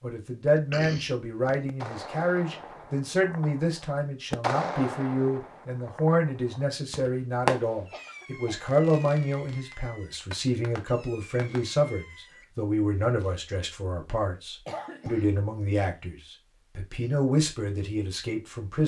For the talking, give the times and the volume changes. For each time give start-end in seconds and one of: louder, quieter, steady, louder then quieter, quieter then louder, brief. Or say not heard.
0.0-18.8 steady.